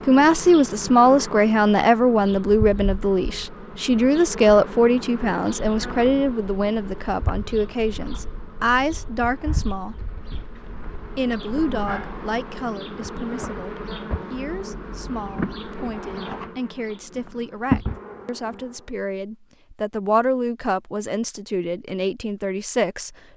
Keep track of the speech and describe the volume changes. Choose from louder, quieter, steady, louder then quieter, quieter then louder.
quieter then louder.